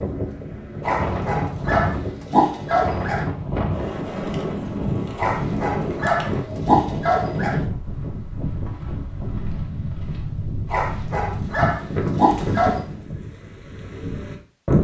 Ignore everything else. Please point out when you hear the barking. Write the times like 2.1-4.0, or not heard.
0.8-3.2, 5.2-7.6, 10.7-12.8.